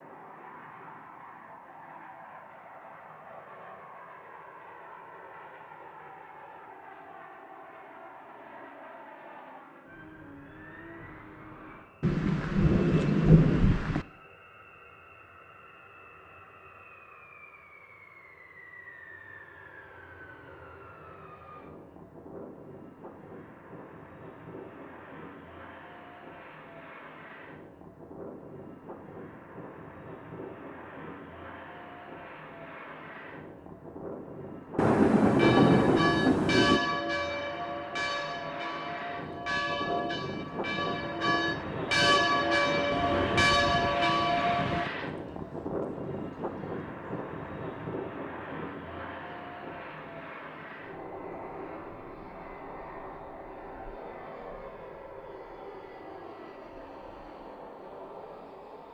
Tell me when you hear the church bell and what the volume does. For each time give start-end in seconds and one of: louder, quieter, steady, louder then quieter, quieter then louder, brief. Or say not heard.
35.2-44.9 quieter then louder.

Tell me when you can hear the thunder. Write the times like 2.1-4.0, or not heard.
12.0-14.1, 34.8-36.8, 42.9-44.9.